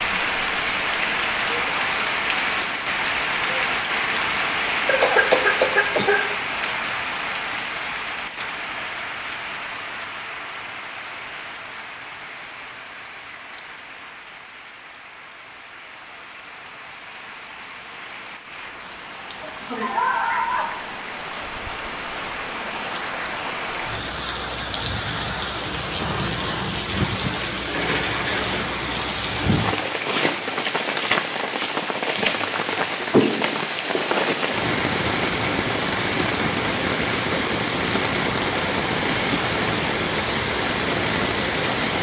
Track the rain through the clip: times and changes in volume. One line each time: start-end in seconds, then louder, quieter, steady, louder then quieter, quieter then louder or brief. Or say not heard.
0.0-41.9 quieter then louder.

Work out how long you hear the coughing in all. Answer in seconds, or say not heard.
4 s.